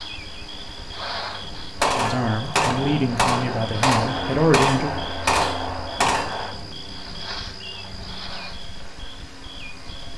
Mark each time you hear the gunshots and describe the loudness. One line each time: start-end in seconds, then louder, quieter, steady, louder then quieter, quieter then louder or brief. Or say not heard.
1.8-6.5 steady.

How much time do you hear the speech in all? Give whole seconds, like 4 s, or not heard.
3 s.